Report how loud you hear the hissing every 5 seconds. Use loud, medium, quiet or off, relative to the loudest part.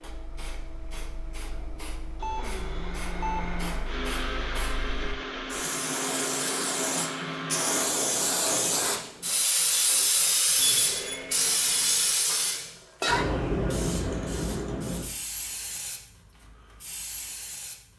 quiet, loud, loud, quiet.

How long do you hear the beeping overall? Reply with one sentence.
The beeping can be heard for 3 seconds in total.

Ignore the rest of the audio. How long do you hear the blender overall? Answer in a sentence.
You can hear the blender for 11 seconds altogether.